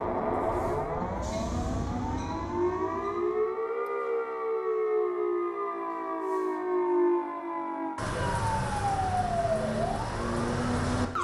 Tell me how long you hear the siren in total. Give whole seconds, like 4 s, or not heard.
11 s.